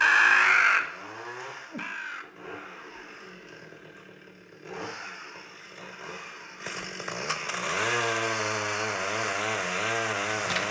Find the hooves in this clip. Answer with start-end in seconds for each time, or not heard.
not heard.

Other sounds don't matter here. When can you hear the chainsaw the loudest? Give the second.
8 s.